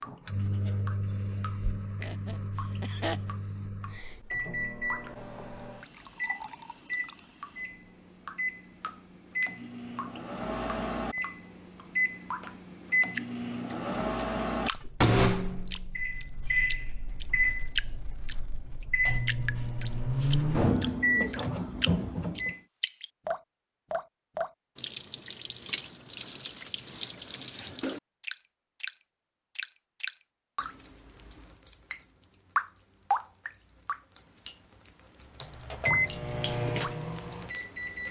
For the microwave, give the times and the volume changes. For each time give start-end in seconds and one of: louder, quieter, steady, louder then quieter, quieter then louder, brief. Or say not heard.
0.1-22.6 louder
35.4-38.0 brief.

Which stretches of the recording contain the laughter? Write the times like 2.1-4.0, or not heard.
1.9-3.3.